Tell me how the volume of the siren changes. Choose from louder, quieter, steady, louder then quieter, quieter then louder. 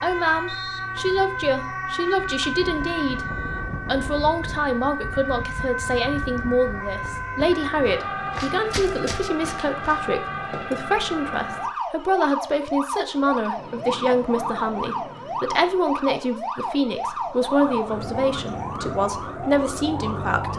steady.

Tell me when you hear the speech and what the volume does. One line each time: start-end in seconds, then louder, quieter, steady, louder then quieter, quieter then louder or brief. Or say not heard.
0.0-20.5 steady.